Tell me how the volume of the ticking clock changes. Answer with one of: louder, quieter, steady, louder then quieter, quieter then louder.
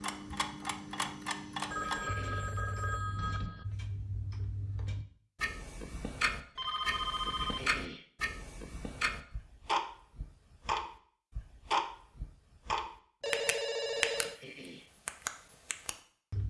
louder.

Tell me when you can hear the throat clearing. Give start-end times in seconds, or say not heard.
1.8-2.5, 7.4-8.1, 14.2-14.9.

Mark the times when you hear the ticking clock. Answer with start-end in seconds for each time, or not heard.
0.0-16.4.